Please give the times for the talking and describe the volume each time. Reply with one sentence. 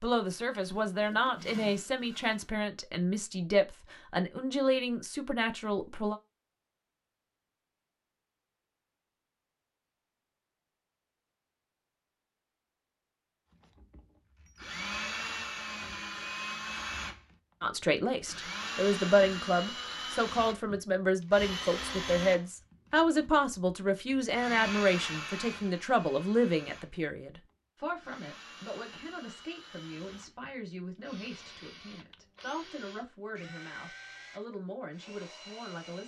The talking can be heard from 0.0 to 6.2 s, at a steady volume; and from 17.6 to 36.0 s, getting quieter.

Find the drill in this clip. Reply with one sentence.
You can hear the drill from 13.6 to 36.0 s.